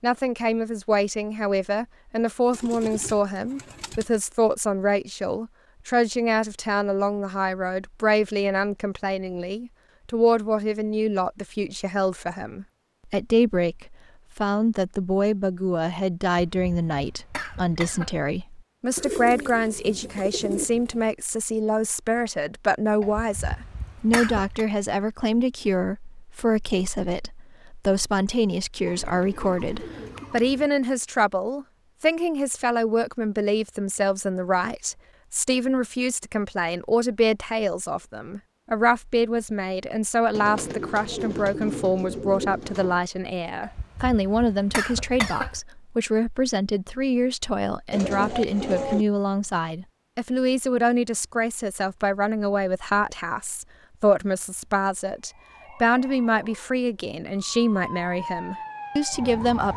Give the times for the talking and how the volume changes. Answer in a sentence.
You can hear the talking from 0.0 to 59.7 s, at a steady volume.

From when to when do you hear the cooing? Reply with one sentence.
You can hear the cooing from 2.5 to 4.2 s, from 18.9 to 21.1 s, from 28.9 to 30.7 s, from 40.3 to 43.0 s and from 47.9 to 49.0 s.